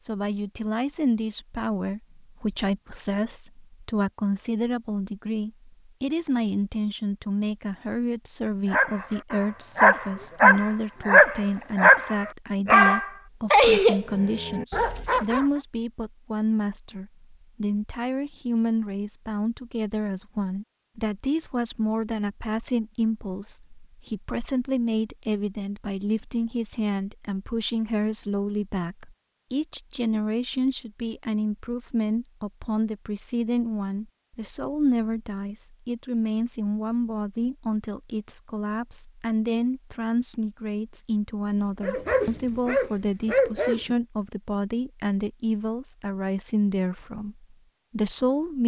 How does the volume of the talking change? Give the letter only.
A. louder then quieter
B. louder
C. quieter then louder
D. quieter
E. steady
E.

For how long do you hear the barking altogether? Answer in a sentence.
You can hear the barking for 9 seconds altogether.